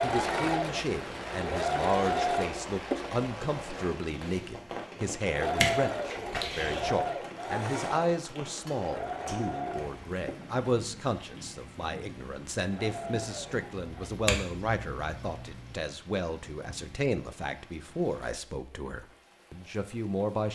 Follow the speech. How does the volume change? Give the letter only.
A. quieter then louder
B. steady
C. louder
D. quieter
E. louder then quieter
B.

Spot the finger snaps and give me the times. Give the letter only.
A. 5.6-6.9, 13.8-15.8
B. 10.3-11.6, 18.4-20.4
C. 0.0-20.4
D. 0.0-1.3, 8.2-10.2
A.